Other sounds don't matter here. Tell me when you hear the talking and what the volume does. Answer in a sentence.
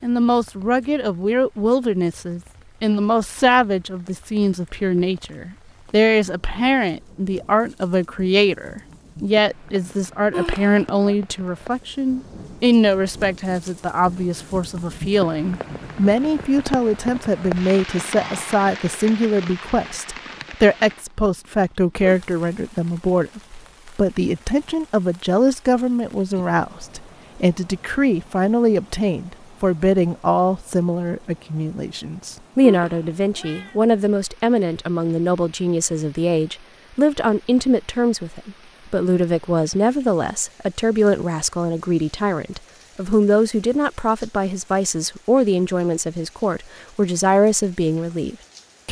You can hear the talking from 0.0 to 48.8 s, at a steady volume.